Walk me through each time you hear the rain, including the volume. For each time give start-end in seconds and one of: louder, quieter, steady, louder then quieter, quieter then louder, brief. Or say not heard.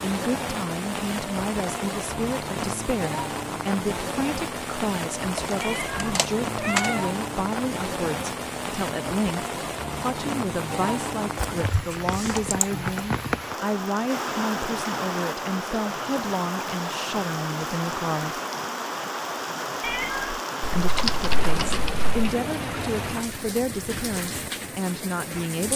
0.0-25.7 steady.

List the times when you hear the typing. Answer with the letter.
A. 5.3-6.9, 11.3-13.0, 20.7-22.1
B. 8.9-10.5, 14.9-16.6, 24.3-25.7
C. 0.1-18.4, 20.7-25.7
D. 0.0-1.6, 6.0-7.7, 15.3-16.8
A.